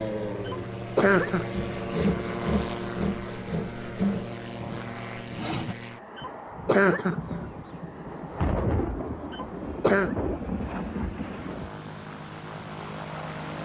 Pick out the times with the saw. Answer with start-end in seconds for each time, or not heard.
1.5-5.8.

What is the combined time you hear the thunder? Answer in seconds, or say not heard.
5 s.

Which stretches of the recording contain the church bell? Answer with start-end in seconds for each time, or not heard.
not heard.